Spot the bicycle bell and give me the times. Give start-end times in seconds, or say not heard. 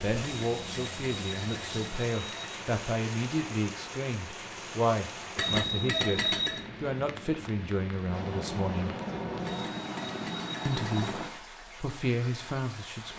0.2-2.6, 5.3-6.6, 9.4-11.2.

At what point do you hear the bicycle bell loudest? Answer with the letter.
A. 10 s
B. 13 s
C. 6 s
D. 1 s
C.